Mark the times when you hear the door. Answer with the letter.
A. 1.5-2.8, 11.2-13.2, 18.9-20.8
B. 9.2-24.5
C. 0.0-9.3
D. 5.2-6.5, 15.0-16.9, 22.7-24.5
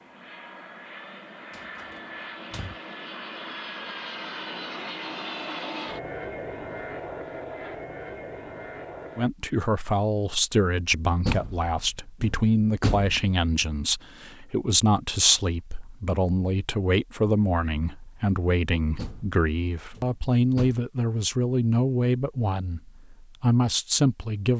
A.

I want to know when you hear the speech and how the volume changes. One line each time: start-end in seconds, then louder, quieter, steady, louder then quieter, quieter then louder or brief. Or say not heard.
9.2-24.5 steady.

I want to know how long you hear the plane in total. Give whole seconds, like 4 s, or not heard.
9 s.